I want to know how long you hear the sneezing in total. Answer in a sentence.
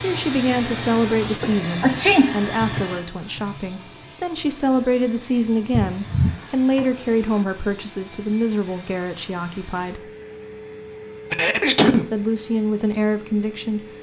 The sneezing can be heard for 3 seconds in total.